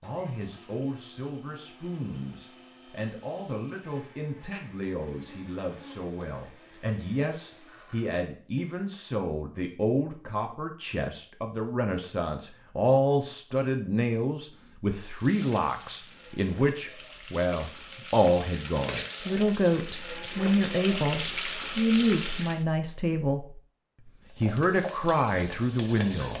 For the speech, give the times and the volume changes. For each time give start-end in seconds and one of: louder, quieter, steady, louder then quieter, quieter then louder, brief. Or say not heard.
0.0-23.6 louder
24.4-26.3 brief.